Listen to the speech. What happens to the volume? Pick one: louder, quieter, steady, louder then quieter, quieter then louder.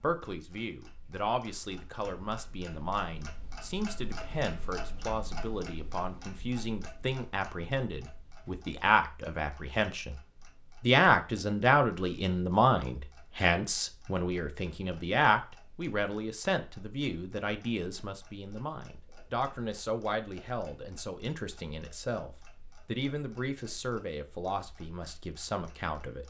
louder then quieter.